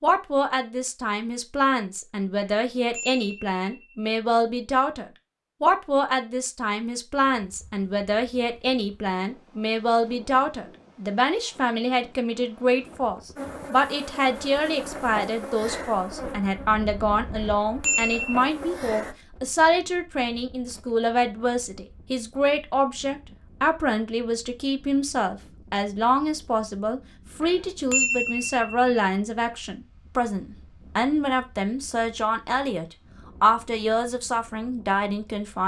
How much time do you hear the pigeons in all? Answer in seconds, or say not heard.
not heard.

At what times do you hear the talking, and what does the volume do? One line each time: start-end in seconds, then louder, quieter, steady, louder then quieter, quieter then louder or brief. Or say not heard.
0.0-35.6 steady.